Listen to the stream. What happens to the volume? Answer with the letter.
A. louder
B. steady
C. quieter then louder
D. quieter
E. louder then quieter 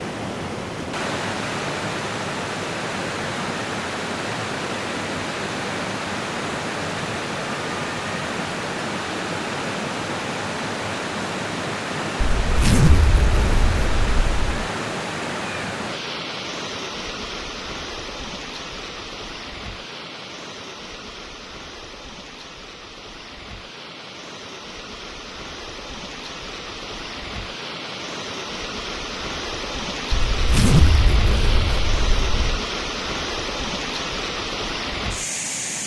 C.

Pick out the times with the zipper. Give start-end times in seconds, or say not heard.
12.4-14.4, 30.1-32.6.